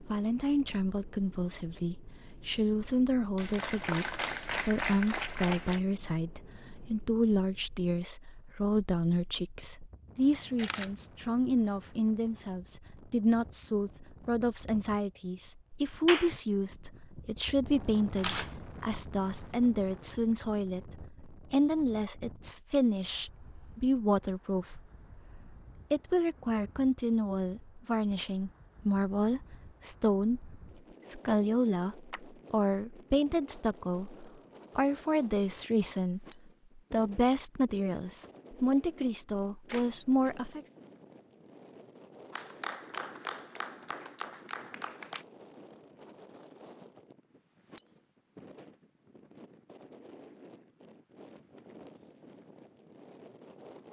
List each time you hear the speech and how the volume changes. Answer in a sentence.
The speech can be heard from 0.0 to 40.6 s, at a steady volume.